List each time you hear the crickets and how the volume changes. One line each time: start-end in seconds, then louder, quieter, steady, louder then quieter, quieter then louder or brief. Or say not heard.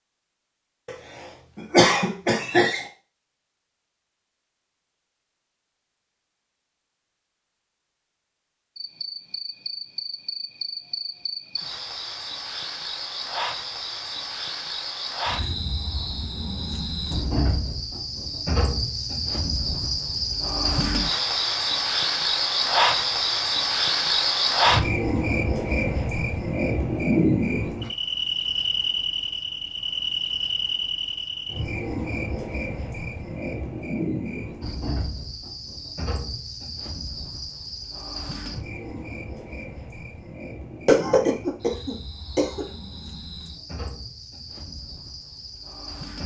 8.8-46.2 louder then quieter.